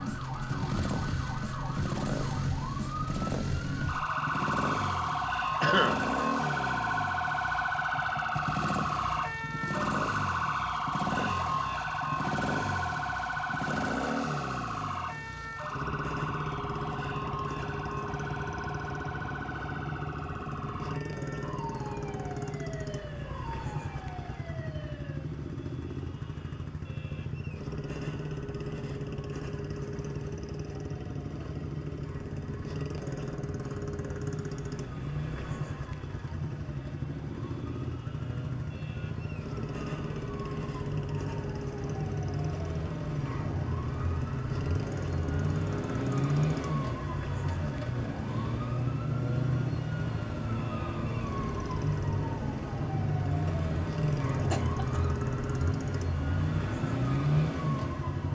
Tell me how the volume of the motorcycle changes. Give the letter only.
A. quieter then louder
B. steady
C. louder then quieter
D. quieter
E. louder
B.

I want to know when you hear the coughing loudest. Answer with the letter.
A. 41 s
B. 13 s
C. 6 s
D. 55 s
C.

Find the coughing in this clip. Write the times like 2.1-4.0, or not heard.
5.6-6.1, 54.5-55.1.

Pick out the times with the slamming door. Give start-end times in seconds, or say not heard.
not heard.